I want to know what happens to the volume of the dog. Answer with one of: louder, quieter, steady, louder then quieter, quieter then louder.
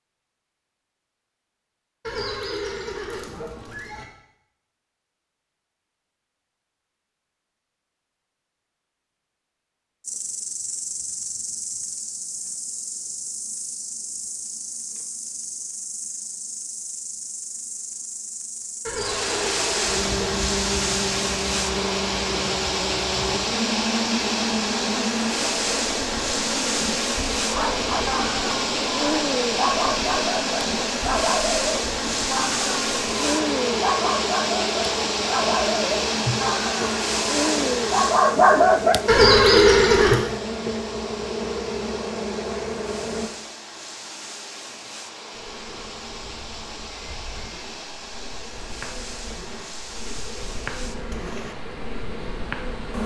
louder.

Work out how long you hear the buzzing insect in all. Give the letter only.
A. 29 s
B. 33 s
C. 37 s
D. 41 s
D.